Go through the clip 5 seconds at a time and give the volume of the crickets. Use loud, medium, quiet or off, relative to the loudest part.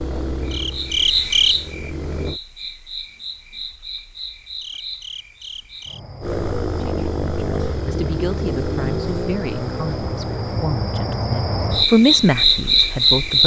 medium, quiet, loud.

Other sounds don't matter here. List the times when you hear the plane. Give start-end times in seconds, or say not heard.
0.0-2.4, 6.2-13.4.